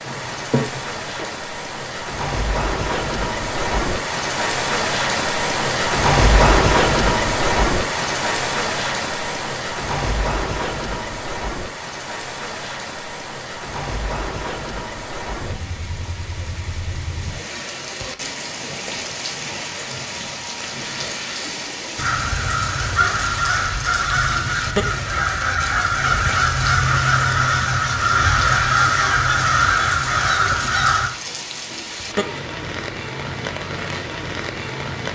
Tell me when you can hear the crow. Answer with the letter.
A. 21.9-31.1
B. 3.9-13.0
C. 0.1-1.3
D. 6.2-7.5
A.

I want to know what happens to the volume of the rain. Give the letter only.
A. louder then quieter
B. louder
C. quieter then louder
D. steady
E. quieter
E.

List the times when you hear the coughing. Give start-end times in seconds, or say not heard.
0.1-1.3.